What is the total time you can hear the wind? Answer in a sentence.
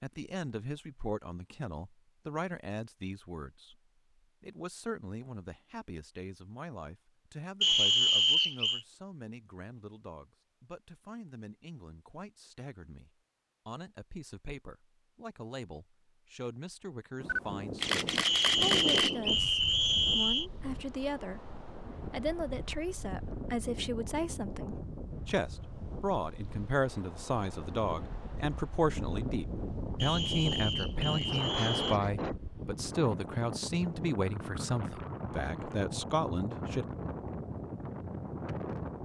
The wind can be heard for 22 seconds in total.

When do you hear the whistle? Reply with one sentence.
You can hear the whistle from 7.6 to 8.8 s, from 18.2 to 20.4 s and from 29.9 to 31.9 s.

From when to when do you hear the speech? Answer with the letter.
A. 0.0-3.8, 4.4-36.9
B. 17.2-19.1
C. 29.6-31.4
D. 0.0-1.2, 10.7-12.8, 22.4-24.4
A.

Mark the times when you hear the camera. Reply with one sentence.
You can hear the camera from 17.2 to 19.1 s.